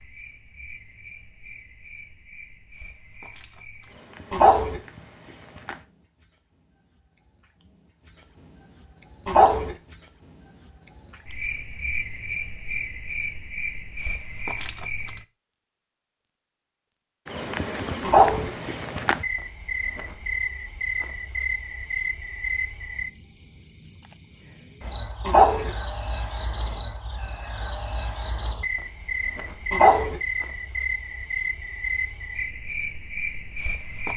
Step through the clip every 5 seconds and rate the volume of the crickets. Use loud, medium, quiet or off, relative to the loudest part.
quiet, medium, loud, loud, loud, loud, loud.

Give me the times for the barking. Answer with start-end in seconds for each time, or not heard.
4.3-4.8, 9.2-9.8, 18.0-18.5, 25.2-25.7, 29.7-30.2.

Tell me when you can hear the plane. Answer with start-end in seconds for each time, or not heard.
not heard.